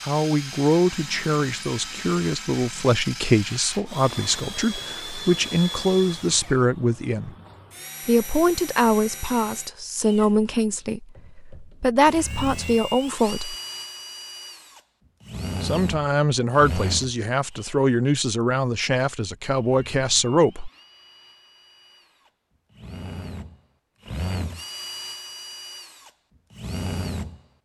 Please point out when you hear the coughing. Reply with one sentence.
You can't hear the coughing here.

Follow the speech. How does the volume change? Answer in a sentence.
The loudness of the speech stays about the same.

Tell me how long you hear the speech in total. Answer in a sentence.
You can hear the speech for 18 seconds altogether.